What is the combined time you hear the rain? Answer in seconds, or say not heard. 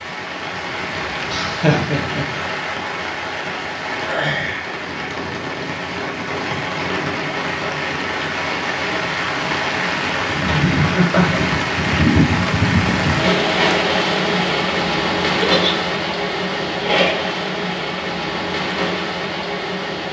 20 s.